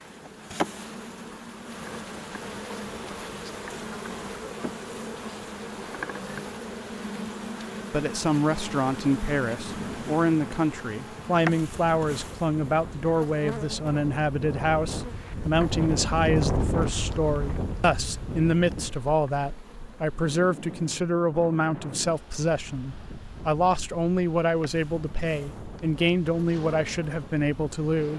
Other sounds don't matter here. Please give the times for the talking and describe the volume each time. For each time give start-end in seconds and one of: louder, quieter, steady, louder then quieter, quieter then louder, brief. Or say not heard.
7.9-28.1 steady.